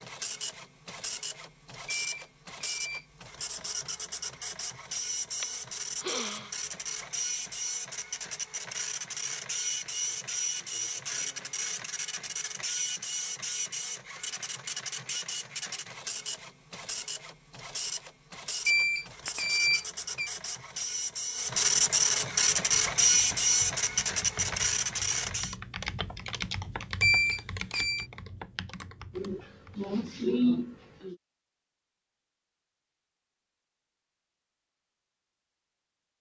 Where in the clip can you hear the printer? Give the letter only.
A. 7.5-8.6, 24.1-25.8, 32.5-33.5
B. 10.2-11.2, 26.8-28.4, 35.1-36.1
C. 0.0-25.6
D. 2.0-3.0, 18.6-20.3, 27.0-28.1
C.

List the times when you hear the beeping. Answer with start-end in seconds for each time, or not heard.
2.0-3.0, 18.6-20.3, 27.0-28.1.